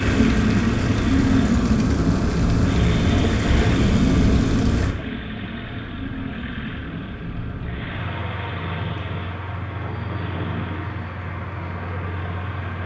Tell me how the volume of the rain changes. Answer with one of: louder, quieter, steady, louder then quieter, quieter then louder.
quieter.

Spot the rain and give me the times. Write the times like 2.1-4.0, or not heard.
0.0-12.8.